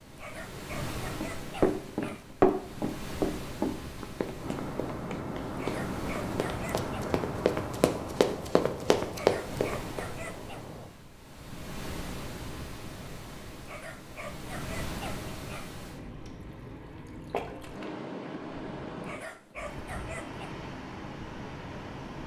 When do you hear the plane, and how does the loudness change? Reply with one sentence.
The plane can be heard from 4.3 to 10.9 s, getting quieter.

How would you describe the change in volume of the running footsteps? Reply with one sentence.
The volume of the running footsteps goes down, then up.